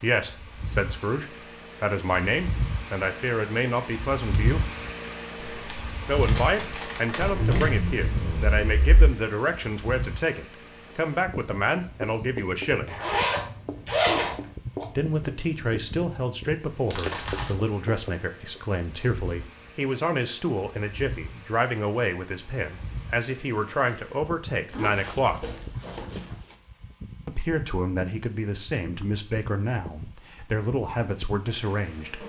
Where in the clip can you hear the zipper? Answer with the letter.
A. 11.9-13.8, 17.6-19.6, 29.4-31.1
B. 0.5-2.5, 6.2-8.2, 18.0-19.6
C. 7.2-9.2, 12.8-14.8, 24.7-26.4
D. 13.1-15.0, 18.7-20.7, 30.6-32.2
C.